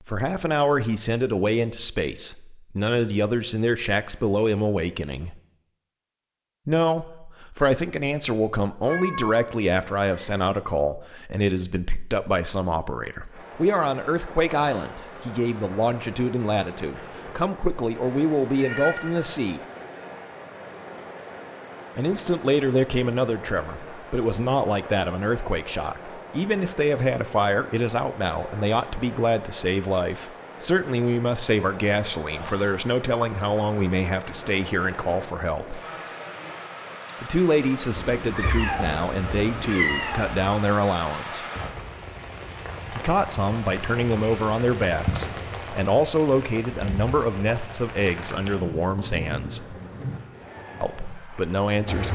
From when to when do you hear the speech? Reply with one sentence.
The speech can be heard from 0.1 to 5.3 s, from 6.7 to 19.6 s, from 21.9 to 35.8 s, from 37.2 to 41.5 s, from 42.9 to 49.8 s and from 50.8 to 52.1 s.